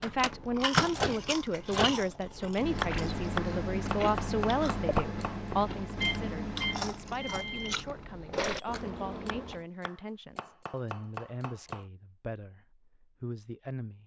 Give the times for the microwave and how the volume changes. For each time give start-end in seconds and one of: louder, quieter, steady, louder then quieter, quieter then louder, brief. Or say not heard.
0.0-8.8 quieter.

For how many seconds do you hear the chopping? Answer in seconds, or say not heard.
5 s.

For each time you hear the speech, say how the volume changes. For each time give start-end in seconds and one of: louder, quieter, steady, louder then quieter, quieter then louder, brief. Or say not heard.
0.0-14.0 quieter.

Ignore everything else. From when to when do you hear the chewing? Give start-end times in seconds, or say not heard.
0.0-9.7.